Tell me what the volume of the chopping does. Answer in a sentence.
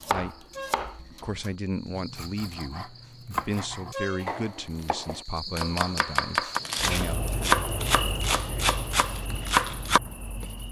The loudness of the chopping goes up.